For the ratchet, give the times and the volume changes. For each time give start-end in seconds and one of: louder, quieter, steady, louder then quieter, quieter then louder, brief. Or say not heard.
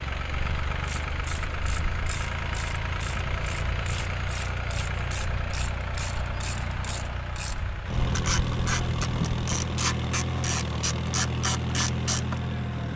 0.8-12.4 louder.